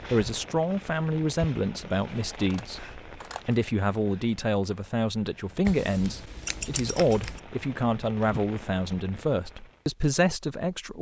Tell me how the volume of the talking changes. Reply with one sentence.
The volume of the talking stays about the same.